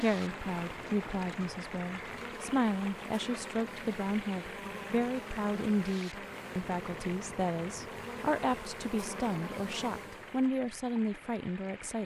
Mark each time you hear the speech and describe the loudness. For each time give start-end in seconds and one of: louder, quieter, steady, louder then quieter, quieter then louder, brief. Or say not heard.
0.0-12.0 steady.